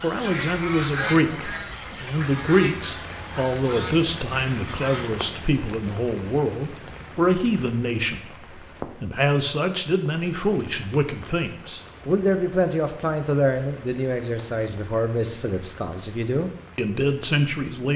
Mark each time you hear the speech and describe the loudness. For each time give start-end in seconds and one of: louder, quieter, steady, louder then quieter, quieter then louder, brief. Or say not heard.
0.0-17.9 steady.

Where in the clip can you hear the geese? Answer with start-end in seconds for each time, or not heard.
0.0-5.2.